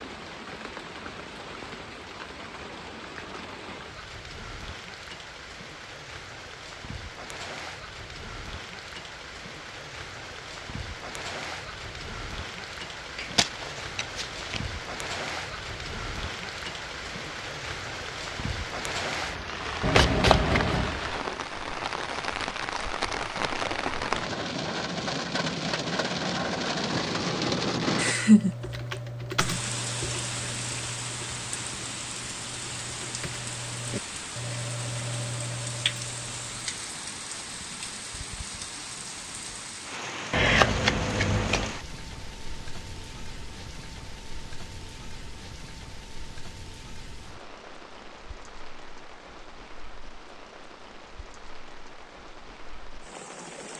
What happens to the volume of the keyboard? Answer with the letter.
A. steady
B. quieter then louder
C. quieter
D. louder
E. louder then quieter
B.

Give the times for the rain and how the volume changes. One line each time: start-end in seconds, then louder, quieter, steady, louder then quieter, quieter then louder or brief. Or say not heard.
0.0-53.7 louder then quieter.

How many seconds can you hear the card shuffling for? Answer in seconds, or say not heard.
4 s.